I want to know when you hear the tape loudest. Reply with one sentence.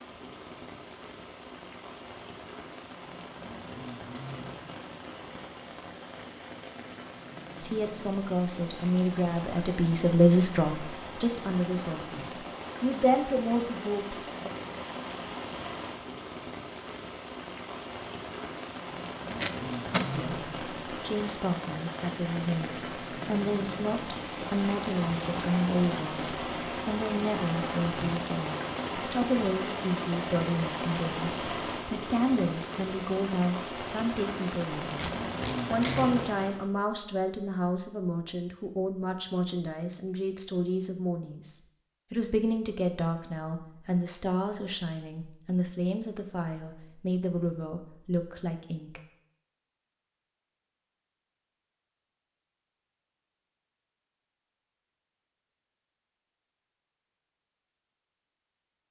The volume of the tape peaks at 20 seconds.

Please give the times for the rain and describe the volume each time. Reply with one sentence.
The rain can be heard from 0.0 to 36.6 s, getting louder.